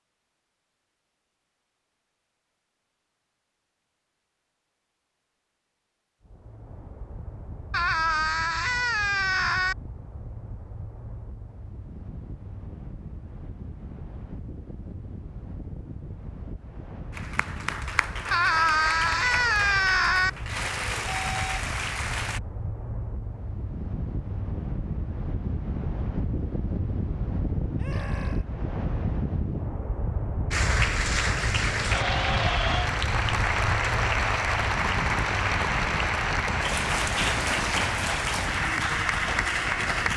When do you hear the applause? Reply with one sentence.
The applause can be heard from 17.1 to 22.4 s and from 30.5 to 40.1 s.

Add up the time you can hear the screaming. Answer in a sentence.
The screaming can be heard for 5 seconds in total.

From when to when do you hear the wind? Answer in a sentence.
You can hear the wind from 6.2 to 40.1 s.